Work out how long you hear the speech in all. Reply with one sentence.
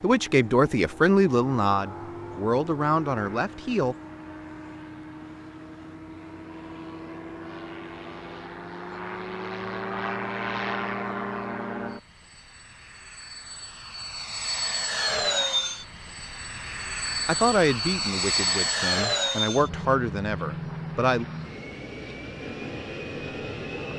You can hear the speech for 8 seconds altogether.